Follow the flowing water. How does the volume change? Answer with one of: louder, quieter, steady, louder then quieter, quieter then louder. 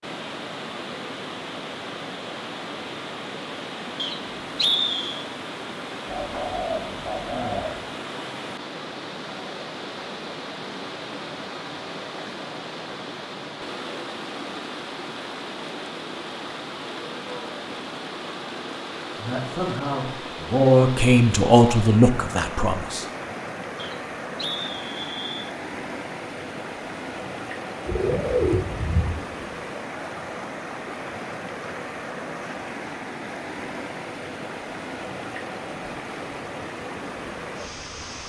steady.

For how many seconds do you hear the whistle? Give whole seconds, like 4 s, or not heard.
3 s.